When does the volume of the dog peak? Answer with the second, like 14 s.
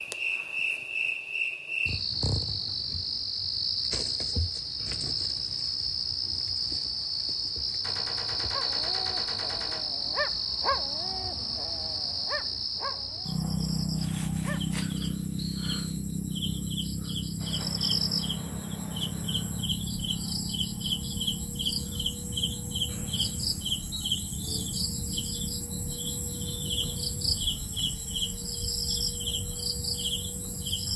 11 s.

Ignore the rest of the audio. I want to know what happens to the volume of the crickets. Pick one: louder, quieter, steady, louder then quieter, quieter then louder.
steady.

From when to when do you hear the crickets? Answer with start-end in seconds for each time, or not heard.
0.0-30.9.